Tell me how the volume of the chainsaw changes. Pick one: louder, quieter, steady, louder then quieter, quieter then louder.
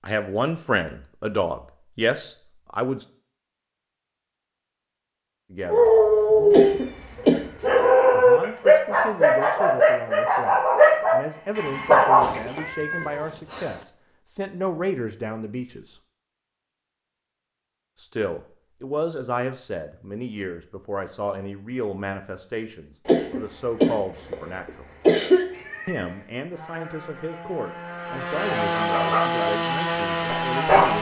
louder.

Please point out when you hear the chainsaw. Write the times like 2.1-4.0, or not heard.
26.5-30.9.